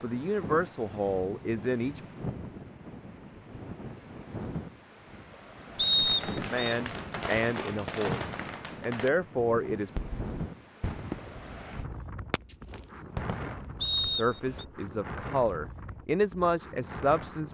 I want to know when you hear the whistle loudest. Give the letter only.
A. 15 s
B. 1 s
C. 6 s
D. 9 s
C.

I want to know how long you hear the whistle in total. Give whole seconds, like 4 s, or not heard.
2 s.